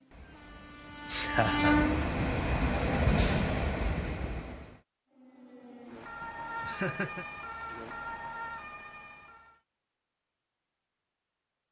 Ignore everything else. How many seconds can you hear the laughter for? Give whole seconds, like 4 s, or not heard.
2 s.